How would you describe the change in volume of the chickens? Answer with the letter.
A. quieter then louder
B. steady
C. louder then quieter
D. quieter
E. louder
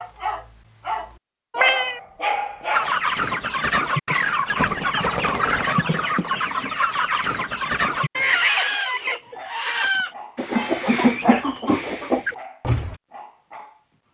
B.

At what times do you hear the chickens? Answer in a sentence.
You can hear the chickens from 2.7 to 12.9 s.